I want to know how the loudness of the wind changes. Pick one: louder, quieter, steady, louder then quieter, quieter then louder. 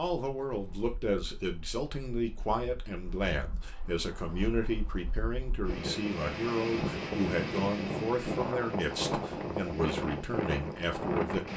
louder.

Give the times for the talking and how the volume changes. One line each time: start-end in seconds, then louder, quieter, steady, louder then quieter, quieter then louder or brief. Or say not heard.
0.0-11.5 steady.